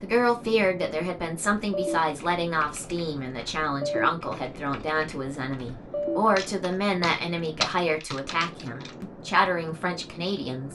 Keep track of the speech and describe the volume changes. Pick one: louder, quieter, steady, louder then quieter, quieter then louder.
steady.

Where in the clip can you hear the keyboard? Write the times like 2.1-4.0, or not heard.
1.6-8.9.